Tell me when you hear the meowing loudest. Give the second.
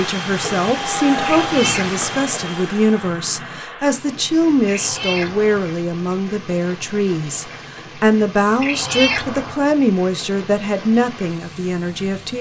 9 s.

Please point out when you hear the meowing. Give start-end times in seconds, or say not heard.
1.2-2.0, 4.7-5.7, 8.6-9.7.